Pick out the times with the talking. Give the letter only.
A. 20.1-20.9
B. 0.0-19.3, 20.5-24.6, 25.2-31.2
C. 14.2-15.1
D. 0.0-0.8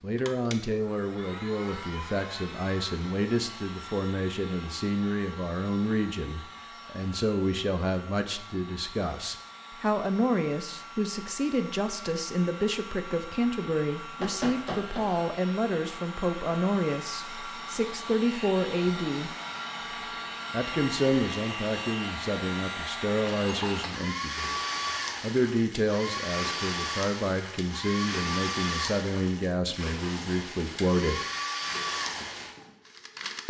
B.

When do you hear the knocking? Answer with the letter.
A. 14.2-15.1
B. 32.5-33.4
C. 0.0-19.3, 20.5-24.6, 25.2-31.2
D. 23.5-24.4
A.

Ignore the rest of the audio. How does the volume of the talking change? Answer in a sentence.
The volume of the talking stays about the same.